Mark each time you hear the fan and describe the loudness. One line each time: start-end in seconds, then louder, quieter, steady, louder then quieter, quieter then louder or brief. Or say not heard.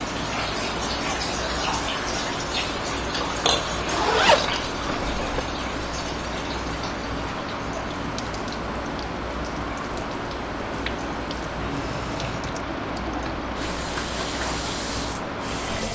0.0-15.9 steady.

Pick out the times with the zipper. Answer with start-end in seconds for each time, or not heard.
3.9-5.4.